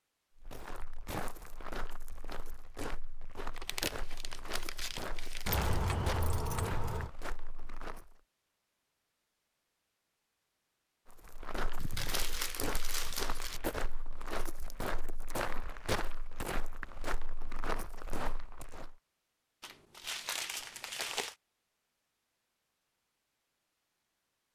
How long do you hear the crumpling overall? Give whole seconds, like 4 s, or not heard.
6 s.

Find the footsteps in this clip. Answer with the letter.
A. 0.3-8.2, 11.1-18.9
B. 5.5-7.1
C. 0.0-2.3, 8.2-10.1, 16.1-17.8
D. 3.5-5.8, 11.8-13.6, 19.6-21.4
A.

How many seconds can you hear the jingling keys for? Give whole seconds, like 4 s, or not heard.
2 s.